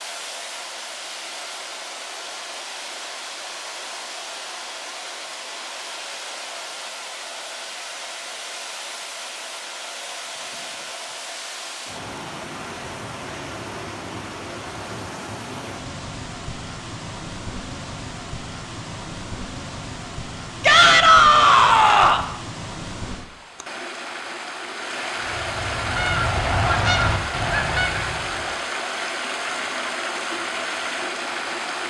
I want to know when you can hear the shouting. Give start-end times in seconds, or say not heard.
20.6-22.2.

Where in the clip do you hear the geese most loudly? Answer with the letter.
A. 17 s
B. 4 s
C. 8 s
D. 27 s
D.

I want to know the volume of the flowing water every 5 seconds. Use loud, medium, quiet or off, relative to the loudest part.
medium, medium, medium, medium, medium, loud, loud.